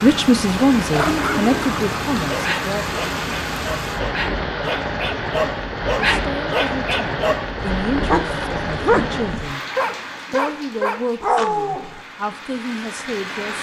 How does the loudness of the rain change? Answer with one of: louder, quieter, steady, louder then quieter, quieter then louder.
quieter.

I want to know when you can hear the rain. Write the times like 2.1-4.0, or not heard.
0.0-13.5.